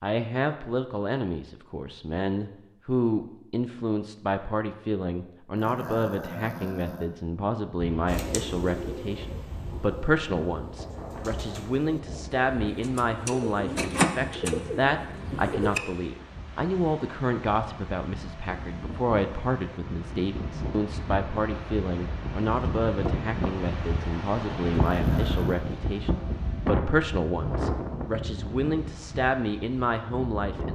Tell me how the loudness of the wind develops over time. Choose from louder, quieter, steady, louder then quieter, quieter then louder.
louder.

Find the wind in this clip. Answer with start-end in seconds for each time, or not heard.
7.8-30.7.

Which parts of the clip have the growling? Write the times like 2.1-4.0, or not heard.
5.5-7.1, 24.9-25.6.